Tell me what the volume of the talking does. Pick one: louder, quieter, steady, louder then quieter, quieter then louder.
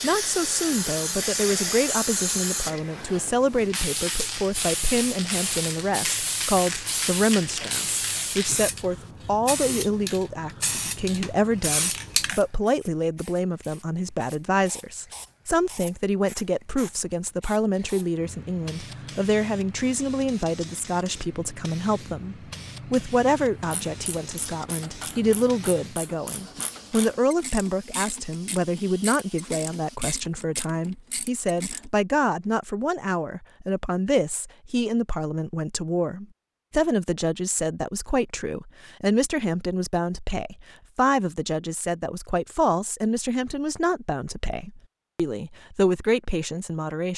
steady.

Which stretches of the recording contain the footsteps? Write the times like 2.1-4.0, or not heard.
not heard.